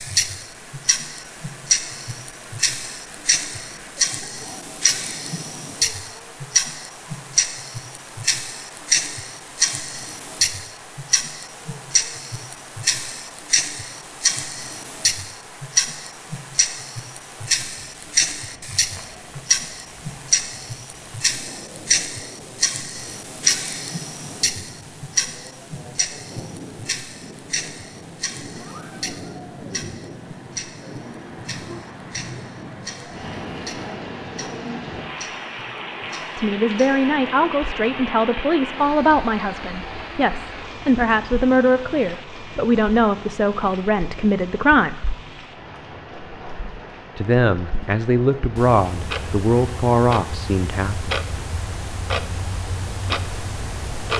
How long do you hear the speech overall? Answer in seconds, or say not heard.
13 s.